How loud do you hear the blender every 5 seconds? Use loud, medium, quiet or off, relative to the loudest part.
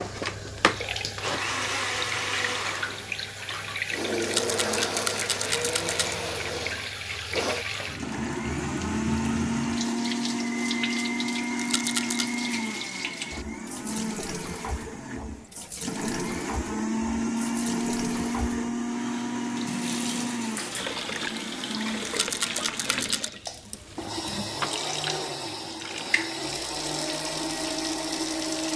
loud, loud, loud, loud, medium, loud.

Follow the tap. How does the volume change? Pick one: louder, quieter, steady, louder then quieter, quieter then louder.
steady.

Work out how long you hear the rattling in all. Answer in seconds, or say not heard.
4 s.